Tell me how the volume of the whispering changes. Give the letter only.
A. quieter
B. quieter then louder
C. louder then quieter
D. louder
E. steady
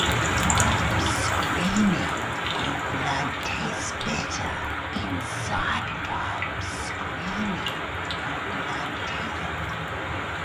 A.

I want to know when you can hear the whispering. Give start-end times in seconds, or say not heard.
0.5-9.5.